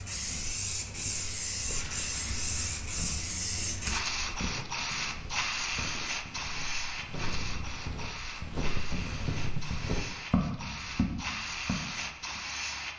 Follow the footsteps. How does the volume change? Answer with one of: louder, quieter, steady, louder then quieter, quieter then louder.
louder.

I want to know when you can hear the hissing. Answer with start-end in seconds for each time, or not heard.
0.0-12.9.